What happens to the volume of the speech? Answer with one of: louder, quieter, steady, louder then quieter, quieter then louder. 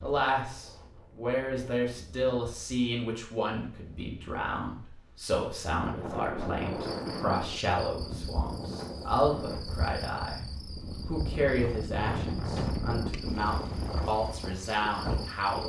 steady.